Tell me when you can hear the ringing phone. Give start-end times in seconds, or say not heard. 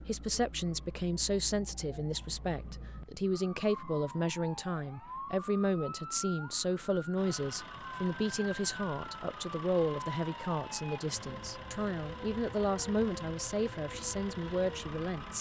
not heard.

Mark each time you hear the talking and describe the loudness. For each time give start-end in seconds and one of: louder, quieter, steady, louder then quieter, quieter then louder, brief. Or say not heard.
0.1-15.3 steady.